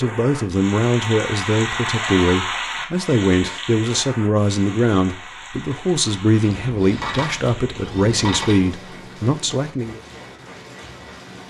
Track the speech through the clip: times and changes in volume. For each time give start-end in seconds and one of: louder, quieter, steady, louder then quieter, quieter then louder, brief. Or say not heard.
0.0-10.0 steady.